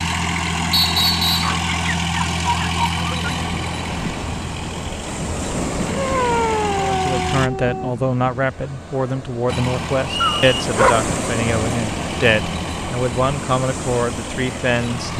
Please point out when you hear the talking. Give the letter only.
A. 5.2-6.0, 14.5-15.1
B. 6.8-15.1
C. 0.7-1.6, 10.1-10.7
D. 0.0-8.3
B.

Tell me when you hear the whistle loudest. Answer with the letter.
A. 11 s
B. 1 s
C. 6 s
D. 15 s
B.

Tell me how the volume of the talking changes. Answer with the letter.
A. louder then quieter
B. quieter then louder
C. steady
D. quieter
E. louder
C.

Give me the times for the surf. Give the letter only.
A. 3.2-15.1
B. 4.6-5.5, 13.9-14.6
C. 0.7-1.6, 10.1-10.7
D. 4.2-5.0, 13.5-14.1
A.